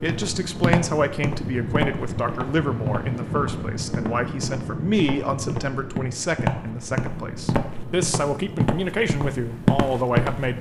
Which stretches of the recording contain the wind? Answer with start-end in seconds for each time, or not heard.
0.0-10.5.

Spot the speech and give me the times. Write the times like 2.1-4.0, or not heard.
0.0-10.5.